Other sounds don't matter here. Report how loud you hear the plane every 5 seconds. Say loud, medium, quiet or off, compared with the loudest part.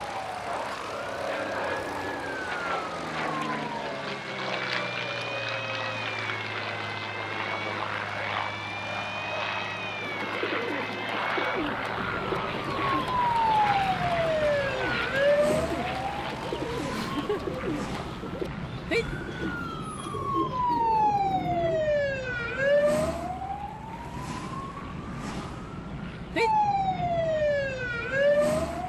loud, loud, loud, medium, quiet, quiet.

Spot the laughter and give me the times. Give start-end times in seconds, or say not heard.
16.8-17.4.